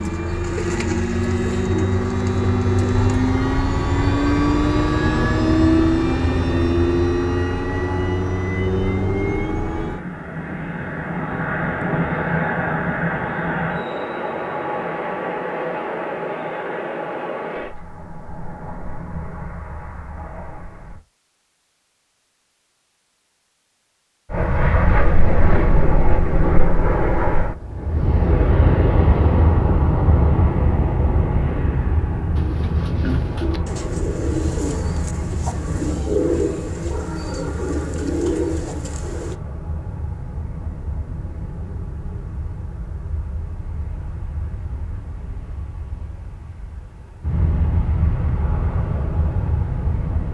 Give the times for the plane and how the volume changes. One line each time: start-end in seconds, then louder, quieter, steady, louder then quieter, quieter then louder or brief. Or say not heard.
0.0-21.0 quieter
24.3-50.2 quieter then louder.